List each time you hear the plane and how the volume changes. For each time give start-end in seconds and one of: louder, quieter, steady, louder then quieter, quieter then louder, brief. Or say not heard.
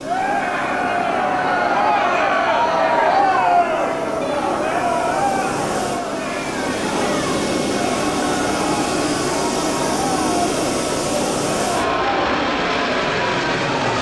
0.0-13.9 louder.